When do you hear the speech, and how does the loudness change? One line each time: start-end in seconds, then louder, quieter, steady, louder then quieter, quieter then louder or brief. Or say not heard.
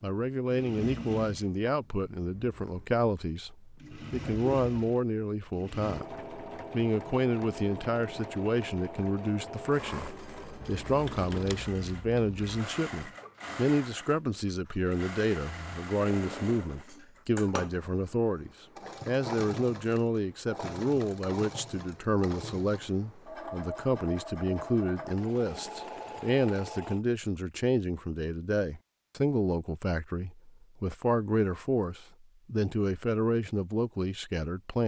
0.0-34.8 steady.